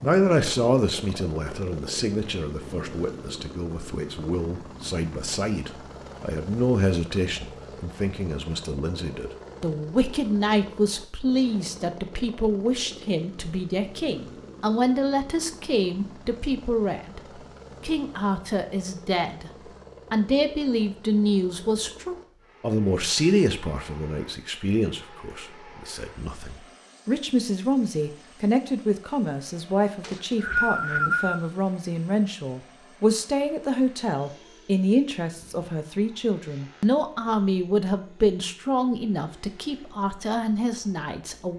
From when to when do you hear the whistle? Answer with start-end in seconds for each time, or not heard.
30.0-31.4.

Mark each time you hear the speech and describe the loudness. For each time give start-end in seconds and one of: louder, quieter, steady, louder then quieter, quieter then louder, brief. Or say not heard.
0.0-19.5 steady
20.1-41.5 steady.